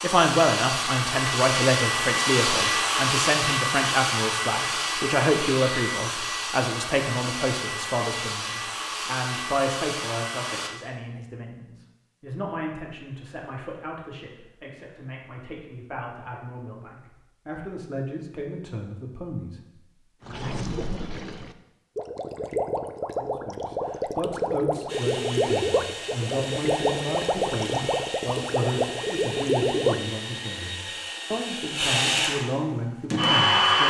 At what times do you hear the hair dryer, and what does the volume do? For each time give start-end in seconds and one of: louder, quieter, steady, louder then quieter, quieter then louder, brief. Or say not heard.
0.0-10.7 quieter
24.9-33.8 louder.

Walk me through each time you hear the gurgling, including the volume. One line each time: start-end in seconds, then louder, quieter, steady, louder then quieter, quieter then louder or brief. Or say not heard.
20.2-30.1 louder.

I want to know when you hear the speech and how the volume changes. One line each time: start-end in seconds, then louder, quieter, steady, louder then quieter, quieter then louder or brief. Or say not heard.
0.0-20.4 quieter
23.1-33.8 steady.